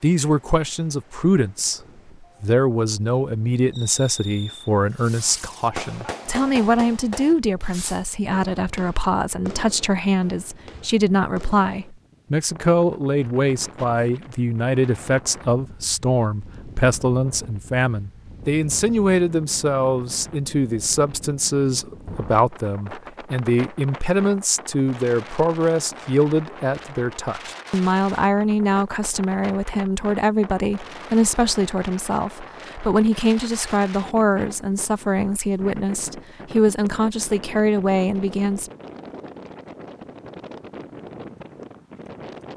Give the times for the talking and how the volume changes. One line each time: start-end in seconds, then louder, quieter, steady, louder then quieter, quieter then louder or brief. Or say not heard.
0.0-1.8 brief
2.4-38.7 steady.